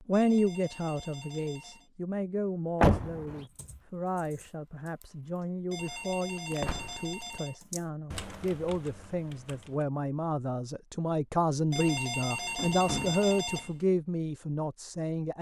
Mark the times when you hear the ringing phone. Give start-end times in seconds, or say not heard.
0.1-1.9, 5.7-7.6, 11.7-13.8.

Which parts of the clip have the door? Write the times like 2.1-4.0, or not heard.
2.8-3.4, 6.6-7.2, 11.8-13.2.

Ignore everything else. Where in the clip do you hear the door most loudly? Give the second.
3 s.